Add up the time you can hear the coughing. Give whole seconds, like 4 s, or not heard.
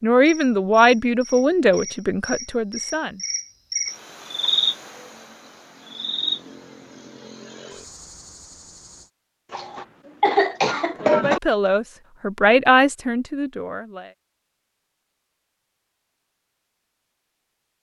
2 s.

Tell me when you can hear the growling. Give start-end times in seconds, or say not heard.
not heard.